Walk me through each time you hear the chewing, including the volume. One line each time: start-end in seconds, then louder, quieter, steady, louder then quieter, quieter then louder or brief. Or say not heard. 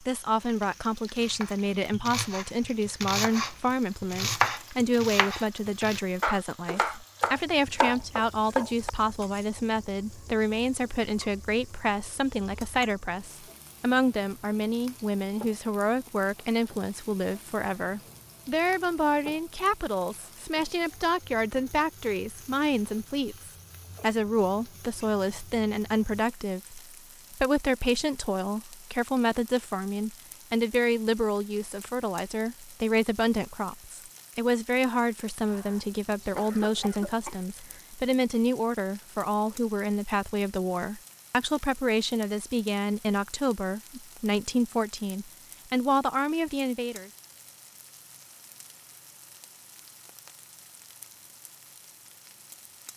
not heard.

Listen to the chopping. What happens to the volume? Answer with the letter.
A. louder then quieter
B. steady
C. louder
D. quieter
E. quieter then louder
C.